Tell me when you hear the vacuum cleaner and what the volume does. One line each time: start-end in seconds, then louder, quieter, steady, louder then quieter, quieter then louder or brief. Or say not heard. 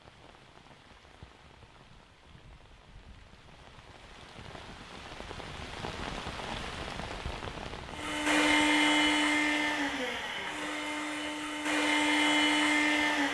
7.9-13.2 quieter then louder.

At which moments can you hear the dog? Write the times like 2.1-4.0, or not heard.
not heard.